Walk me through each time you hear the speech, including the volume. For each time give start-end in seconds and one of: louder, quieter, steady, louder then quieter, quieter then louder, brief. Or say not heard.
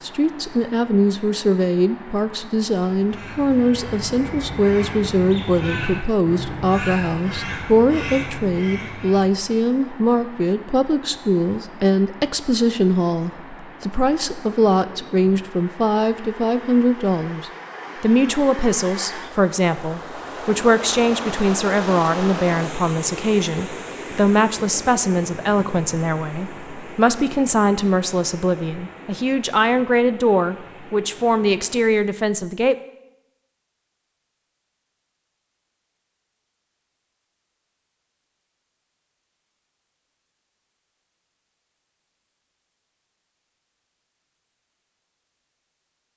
0.0-32.8 steady.